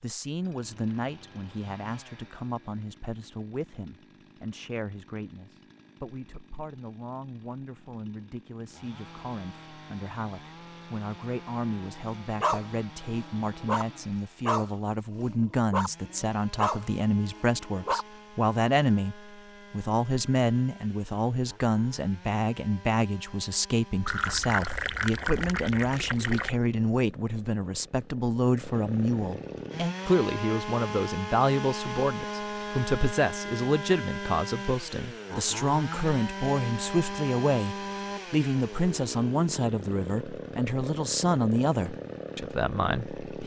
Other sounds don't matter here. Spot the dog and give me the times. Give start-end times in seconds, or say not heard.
11.8-18.1.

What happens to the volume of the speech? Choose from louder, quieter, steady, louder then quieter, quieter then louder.
louder.